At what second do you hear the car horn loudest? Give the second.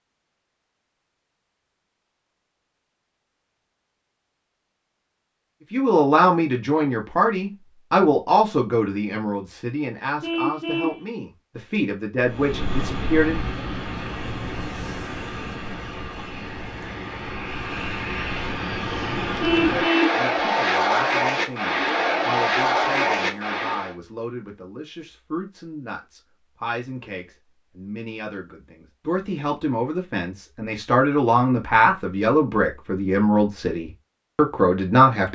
20 s.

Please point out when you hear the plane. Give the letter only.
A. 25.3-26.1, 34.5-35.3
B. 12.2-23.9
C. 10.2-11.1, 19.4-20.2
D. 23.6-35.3
B.